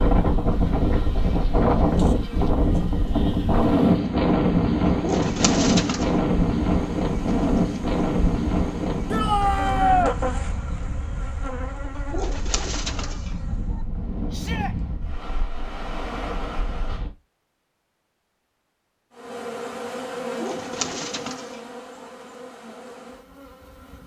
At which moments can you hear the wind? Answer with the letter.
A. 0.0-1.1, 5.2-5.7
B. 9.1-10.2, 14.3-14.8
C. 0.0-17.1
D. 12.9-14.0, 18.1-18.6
C.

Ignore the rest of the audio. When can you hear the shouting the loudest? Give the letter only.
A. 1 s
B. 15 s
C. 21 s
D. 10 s
D.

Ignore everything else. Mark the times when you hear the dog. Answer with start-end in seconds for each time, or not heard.
not heard.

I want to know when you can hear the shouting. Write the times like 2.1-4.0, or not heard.
9.1-10.2, 14.3-14.8.